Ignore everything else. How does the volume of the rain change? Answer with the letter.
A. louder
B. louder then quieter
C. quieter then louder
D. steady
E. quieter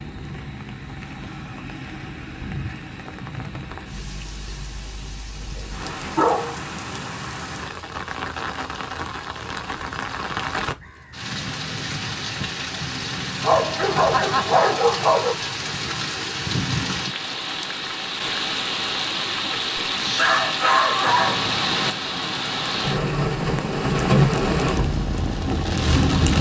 A.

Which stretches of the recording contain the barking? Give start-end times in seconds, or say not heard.
5.4-6.5, 13.4-15.3, 19.5-21.4.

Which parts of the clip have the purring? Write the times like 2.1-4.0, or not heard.
23.4-26.3.